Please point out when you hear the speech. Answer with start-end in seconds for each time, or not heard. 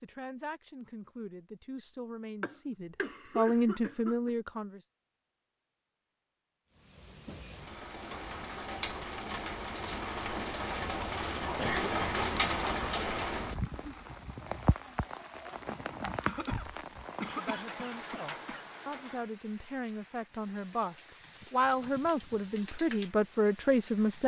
0.0-4.8, 17.4-24.2.